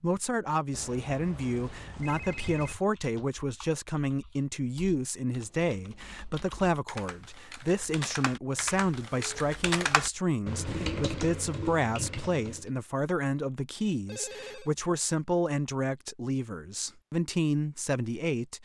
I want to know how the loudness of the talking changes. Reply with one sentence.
The loudness of the talking stays about the same.